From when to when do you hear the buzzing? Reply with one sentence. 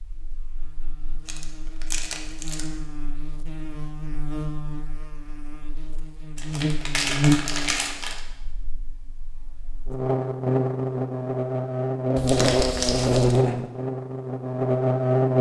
You can hear the buzzing from 0.0 to 15.3 s.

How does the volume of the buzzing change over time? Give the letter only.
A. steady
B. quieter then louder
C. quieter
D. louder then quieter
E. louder
E.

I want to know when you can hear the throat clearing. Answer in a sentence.
The throat clearing can't be heard in this clip.